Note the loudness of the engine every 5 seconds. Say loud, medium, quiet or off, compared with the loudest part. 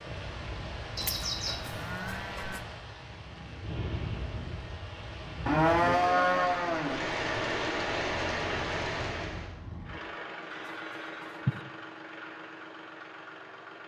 off, loud, loud.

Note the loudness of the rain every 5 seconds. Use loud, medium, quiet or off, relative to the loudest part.
medium, loud, off.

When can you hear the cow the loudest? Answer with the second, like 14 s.
6 s.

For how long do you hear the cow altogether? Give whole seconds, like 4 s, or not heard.
4 s.